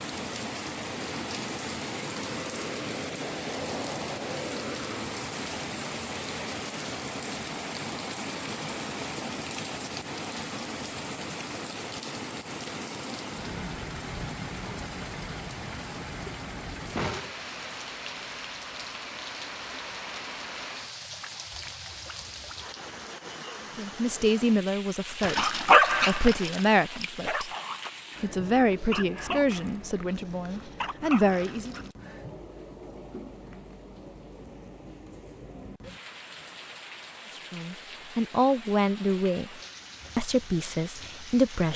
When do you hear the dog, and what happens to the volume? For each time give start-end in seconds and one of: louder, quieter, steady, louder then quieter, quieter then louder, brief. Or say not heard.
25.2-31.9 quieter.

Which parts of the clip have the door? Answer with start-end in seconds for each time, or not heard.
16.9-17.8.